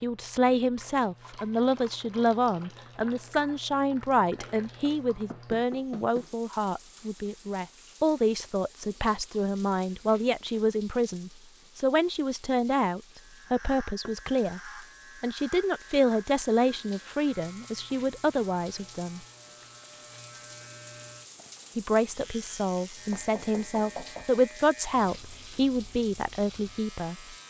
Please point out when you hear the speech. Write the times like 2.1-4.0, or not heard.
0.0-19.2, 21.8-27.4.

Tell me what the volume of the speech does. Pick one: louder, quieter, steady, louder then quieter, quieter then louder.
steady.